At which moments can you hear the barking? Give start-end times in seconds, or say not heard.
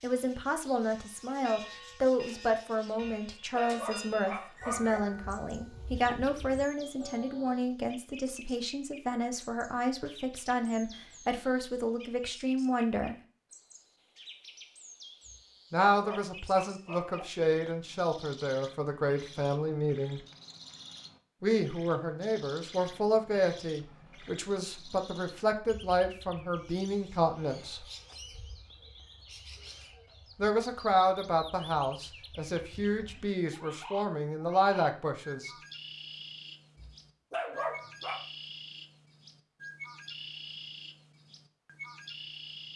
3.0-5.0, 15.2-17.2, 36.8-38.2.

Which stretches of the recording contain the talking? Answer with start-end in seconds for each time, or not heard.
0.0-13.2, 15.7-20.2, 21.4-27.9, 30.4-35.5.